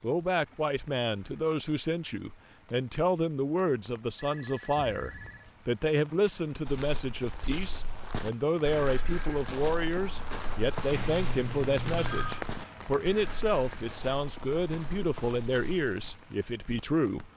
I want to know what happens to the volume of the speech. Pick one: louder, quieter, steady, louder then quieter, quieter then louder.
steady.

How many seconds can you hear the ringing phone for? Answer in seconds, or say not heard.
3 s.